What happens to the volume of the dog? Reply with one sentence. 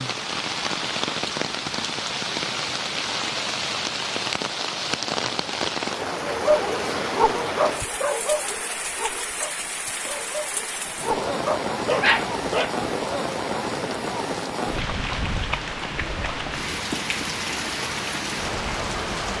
The volume of the dog goes down, then up.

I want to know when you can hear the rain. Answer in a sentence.
The rain can be heard from 0.0 to 19.3 s.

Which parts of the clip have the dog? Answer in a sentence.
The dog can be heard from 6.2 to 12.7 s.